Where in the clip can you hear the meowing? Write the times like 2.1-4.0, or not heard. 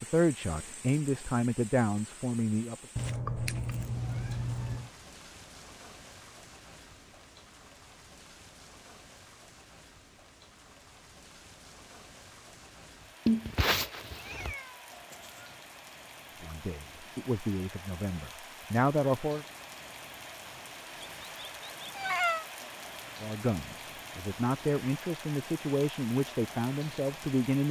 3.0-4.9, 13.2-15.2, 21.0-22.4.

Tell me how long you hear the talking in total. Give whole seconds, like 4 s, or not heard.
10 s.